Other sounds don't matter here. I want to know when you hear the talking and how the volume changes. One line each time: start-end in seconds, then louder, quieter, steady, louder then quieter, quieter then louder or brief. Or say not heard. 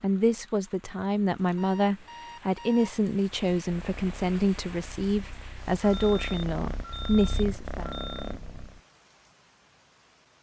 0.0-7.8 steady.